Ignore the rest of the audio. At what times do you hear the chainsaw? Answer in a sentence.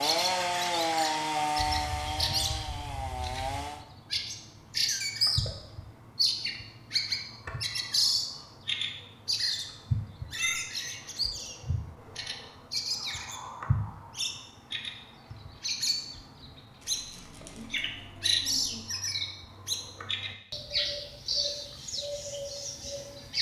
You can hear the chainsaw from 0.0 to 3.9 s.